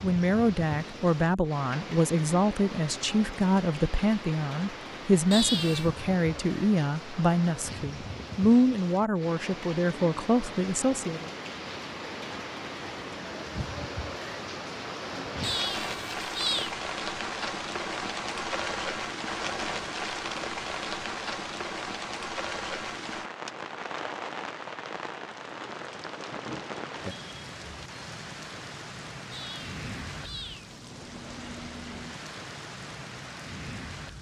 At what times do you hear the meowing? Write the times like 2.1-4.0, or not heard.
5.3-5.9, 15.4-16.8, 29.3-30.9.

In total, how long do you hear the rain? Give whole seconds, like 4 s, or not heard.
34 s.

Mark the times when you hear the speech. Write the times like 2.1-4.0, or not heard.
0.0-11.2.